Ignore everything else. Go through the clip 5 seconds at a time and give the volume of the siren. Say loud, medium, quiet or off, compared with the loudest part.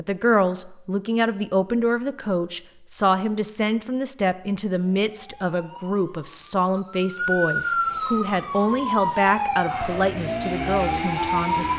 off, loud, loud.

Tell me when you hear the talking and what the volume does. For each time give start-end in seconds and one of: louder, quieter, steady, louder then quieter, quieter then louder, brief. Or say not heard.
0.0-11.7 steady.